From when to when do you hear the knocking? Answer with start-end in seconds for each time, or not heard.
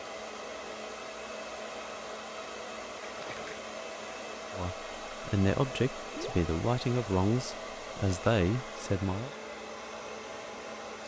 not heard.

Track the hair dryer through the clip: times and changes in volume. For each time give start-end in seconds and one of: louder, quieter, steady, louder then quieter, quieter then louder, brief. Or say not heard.
0.0-11.0 steady.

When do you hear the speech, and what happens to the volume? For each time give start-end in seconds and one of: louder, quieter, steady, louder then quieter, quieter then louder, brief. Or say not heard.
4.5-9.3 steady.